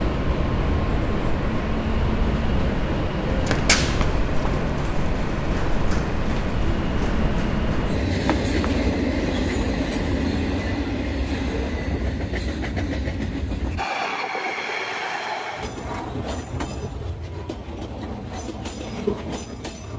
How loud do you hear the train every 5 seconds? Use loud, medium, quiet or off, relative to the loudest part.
loud, loud, loud, medium.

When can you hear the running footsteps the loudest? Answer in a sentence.
The volume of the running footsteps peaks at 4 seconds.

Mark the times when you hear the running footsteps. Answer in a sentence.
You can hear the running footsteps from 3.3 to 8.8 s.